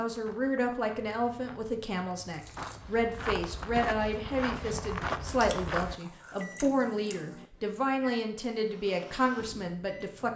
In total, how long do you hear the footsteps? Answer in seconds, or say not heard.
6 s.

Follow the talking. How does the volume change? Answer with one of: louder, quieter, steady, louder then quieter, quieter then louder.
steady.